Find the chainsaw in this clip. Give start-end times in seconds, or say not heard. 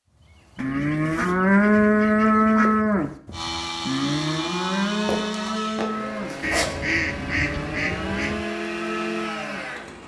3.3-10.0.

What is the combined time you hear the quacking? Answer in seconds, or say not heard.
4 s.